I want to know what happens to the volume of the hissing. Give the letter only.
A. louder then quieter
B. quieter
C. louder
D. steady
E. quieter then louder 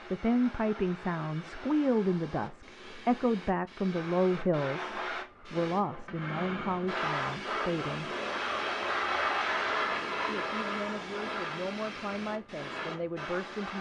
A.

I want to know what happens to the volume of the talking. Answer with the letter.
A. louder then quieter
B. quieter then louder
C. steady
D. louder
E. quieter
E.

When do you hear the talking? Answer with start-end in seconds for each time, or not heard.
0.1-8.1, 10.2-13.7.